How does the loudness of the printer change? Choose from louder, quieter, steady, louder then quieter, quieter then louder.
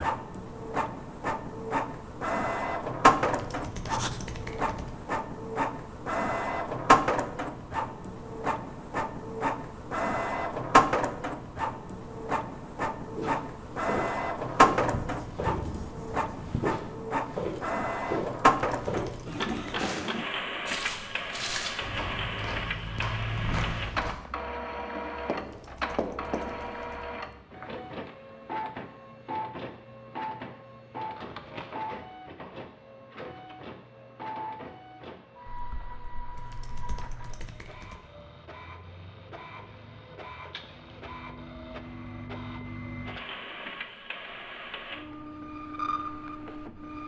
quieter.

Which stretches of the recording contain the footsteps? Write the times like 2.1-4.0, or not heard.
13.2-24.1.